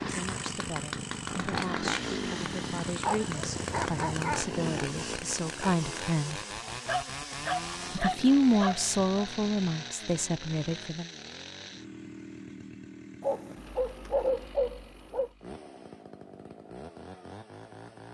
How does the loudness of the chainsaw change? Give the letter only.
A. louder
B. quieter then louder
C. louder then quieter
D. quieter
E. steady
D.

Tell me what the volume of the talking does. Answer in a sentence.
The loudness of the talking goes up, then down.